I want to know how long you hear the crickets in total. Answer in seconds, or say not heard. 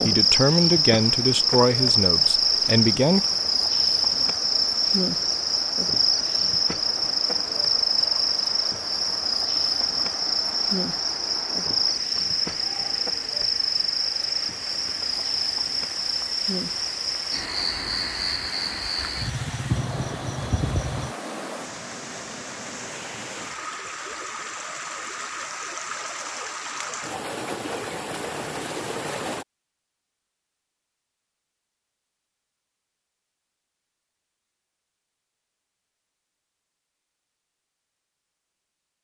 21 s.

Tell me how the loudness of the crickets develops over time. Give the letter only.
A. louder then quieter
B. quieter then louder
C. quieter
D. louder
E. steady
C.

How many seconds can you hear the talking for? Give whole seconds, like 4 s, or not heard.
3 s.